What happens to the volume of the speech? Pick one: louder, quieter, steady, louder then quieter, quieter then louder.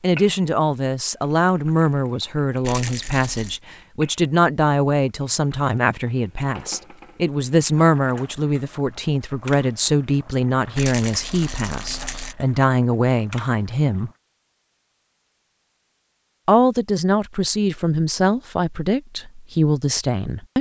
steady.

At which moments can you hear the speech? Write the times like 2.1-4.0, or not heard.
0.0-14.1, 16.4-20.5.